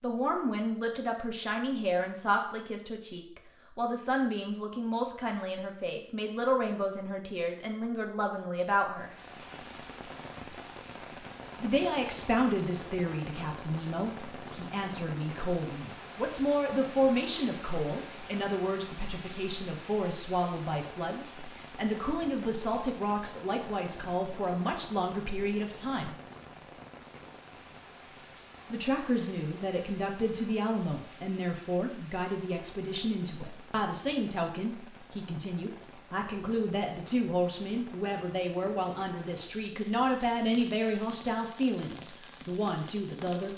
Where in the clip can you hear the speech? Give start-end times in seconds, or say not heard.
0.0-9.1, 11.6-26.1, 28.7-43.5.